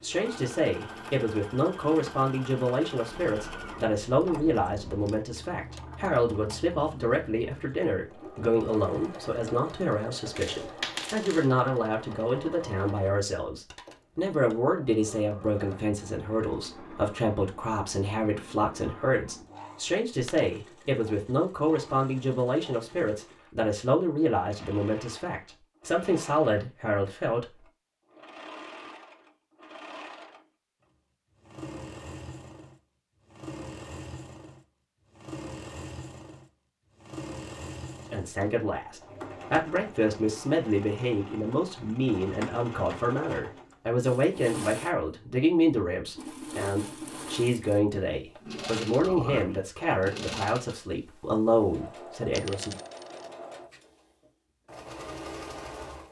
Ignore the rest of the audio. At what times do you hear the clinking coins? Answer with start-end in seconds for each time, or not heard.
10.3-11.5, 20.1-20.6, 52.4-53.3.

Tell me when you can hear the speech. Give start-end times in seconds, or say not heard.
0.0-27.6, 38.1-52.8.